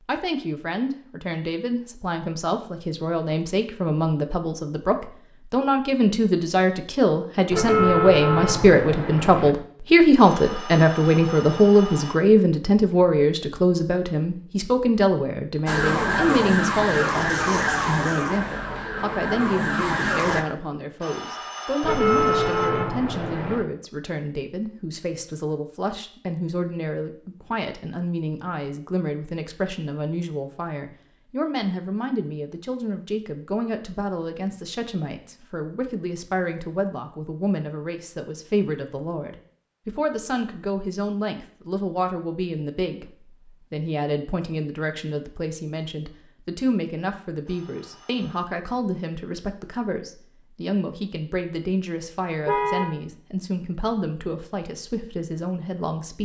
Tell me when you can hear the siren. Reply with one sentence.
The siren can be heard from 15.7 to 20.4 s.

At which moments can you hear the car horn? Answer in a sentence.
The car horn can be heard from 7.5 to 9.5 s, from 21.8 to 23.6 s and from 52.5 to 52.9 s.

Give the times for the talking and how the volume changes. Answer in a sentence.
The talking can be heard from 0.1 to 56.1 s, getting quieter.